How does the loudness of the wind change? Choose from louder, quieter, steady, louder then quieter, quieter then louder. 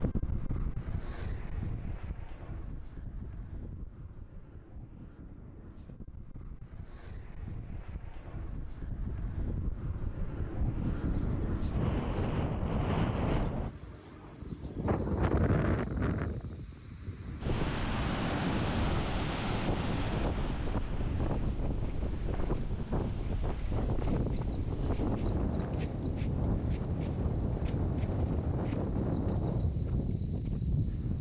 louder.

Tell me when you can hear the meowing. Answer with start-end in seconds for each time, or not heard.
not heard.